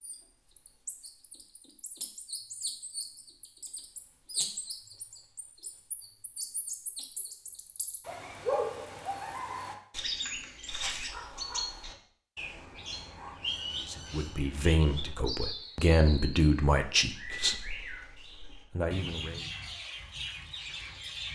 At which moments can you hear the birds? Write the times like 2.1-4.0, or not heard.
0.0-21.3.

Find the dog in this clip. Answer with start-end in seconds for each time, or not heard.
not heard.